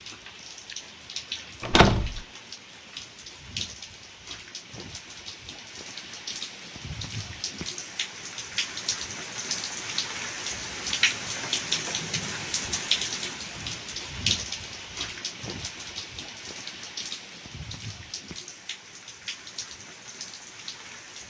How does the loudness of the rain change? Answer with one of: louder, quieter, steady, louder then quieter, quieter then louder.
louder then quieter.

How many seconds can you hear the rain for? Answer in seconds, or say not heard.
21 s.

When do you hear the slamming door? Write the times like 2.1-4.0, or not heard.
1.6-2.2.